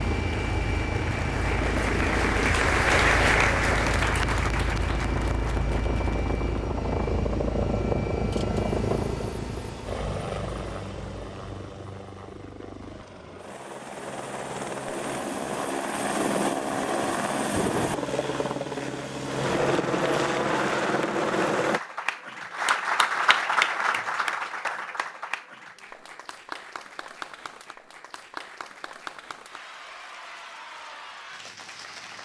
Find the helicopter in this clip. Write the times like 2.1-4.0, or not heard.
0.0-21.8.